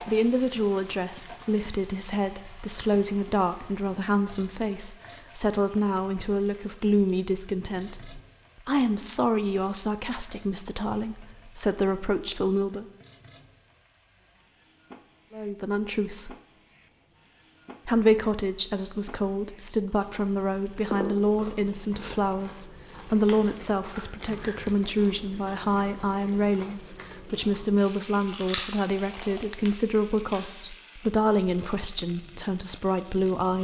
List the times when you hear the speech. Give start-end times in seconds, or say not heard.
0.1-12.8, 15.3-16.4, 17.9-33.5.